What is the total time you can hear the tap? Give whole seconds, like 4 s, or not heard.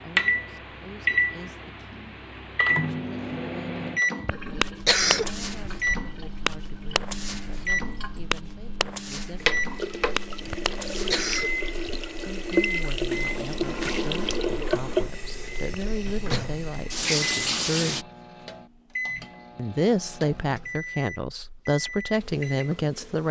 14 s.